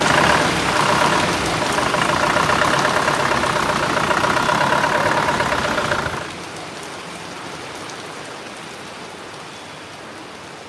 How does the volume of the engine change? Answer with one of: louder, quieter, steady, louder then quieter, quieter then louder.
steady.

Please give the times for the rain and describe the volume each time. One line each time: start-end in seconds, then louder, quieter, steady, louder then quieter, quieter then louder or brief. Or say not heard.
0.0-10.6 quieter.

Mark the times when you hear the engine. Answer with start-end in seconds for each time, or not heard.
0.0-6.3.